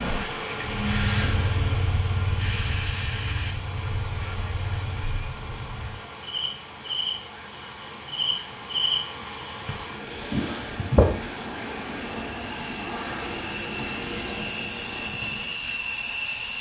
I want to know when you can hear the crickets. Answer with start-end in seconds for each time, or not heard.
0.0-11.3.